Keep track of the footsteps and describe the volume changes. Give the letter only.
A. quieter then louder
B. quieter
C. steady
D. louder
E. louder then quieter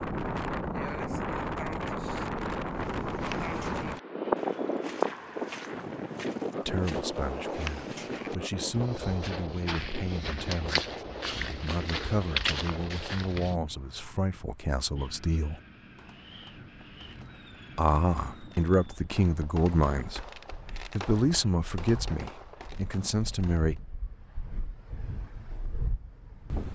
D.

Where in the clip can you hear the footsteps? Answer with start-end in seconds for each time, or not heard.
2.7-13.6.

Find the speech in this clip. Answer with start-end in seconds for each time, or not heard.
6.7-15.6, 17.8-20.2, 20.9-23.8.